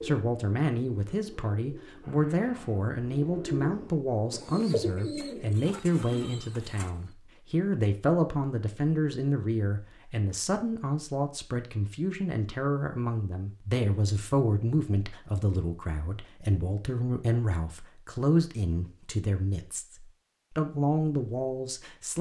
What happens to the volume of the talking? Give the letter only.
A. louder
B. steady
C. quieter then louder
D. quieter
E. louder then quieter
B.